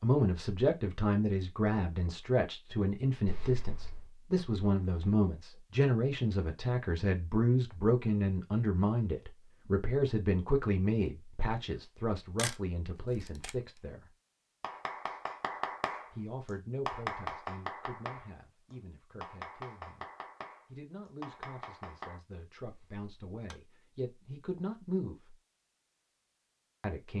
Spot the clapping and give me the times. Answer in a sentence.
You can hear the clapping from 14.6 to 22.2 s.